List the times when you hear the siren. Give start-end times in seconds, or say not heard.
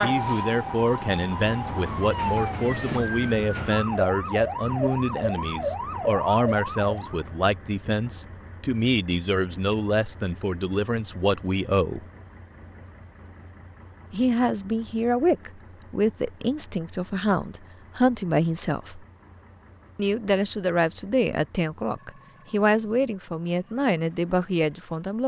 0.0-7.2.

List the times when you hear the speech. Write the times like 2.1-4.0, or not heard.
0.0-12.1, 14.1-19.1, 19.9-25.2.